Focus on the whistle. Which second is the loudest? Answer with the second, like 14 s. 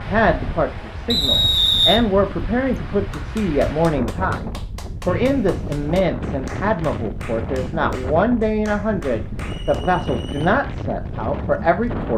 2 s.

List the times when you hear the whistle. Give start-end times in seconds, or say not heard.
1.1-2.0, 5.0-6.0, 9.4-10.4.